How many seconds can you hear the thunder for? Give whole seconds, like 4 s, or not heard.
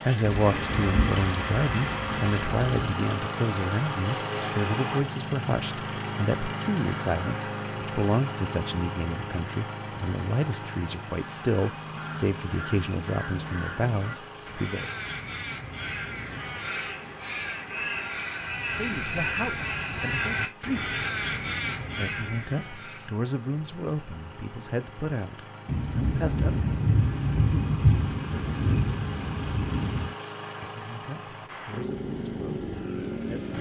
7 s.